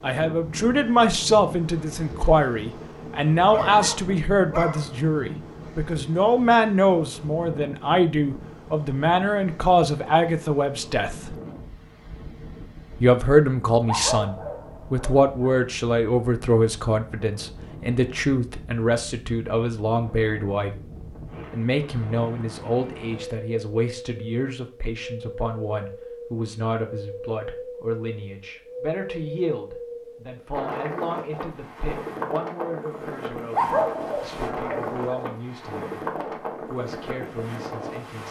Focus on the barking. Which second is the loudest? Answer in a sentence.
The loudest moment of the barking is at 34 seconds.